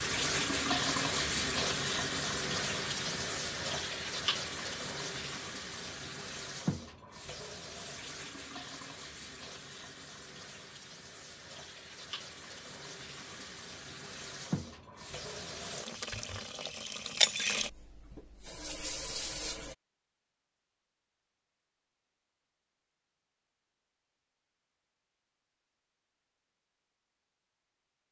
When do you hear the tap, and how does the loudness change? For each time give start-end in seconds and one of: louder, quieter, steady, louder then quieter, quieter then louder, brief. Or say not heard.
0.0-19.8 quieter then louder.